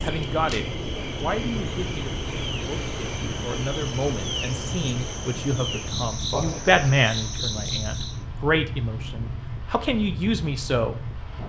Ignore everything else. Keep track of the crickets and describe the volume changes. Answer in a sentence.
The volume of the crickets stays about the same.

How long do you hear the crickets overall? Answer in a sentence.
You can hear the crickets for 8 seconds altogether.